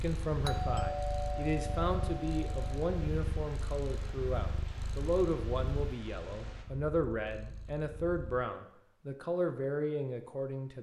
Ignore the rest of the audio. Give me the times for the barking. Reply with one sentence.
The barking can't be heard in this clip.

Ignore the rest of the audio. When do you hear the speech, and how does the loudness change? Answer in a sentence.
You can hear the speech from 0.0 to 10.7 s, at a steady volume.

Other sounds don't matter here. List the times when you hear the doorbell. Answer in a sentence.
The doorbell can be heard from 0.5 to 2.9 s.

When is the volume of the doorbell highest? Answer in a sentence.
The volume of the doorbell peaks at 1 second.